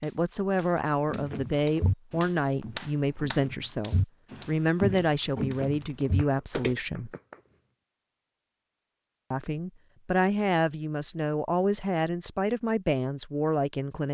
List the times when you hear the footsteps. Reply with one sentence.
You can hear the footsteps from 1.1 to 7.2 s.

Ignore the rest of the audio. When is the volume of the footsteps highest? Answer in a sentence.
The loudest moment of the footsteps is at 5 seconds.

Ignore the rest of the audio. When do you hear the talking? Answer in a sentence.
You can hear the talking from 0.0 to 7.1 s and from 9.3 to 14.0 s.